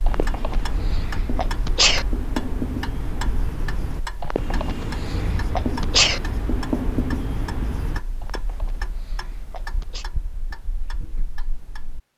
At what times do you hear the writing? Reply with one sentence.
You can hear the writing from 0.1 to 8.0 s.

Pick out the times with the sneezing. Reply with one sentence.
The sneezing can be heard from 0.1 to 2.0 s, from 4.2 to 6.2 s and from 8.2 to 10.1 s.